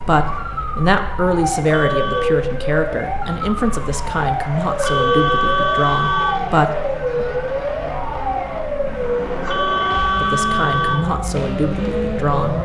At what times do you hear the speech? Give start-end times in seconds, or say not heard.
0.0-7.2, 10.2-12.6.